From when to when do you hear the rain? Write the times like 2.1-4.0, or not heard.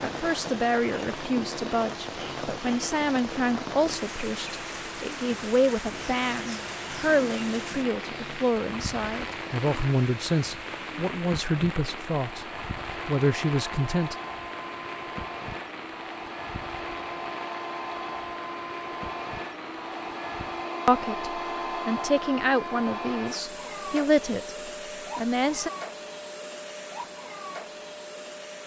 0.0-20.6.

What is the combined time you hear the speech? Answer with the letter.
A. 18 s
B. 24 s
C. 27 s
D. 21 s
A.